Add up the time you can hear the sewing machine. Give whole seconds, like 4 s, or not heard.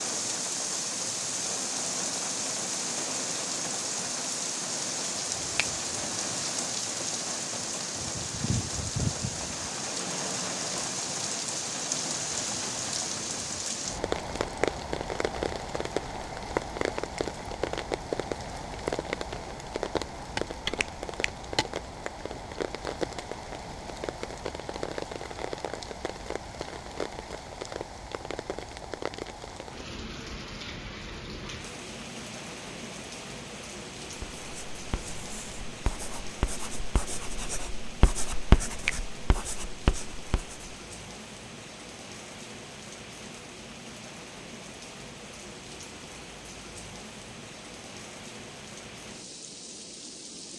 not heard.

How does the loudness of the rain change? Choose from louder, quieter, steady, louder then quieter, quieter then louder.
quieter.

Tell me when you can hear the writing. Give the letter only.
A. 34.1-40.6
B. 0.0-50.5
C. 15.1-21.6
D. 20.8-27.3
A.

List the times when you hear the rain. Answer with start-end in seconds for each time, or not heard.
0.0-50.5.